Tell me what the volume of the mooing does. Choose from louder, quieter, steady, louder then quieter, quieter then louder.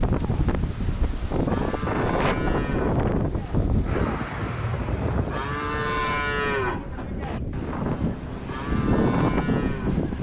louder then quieter.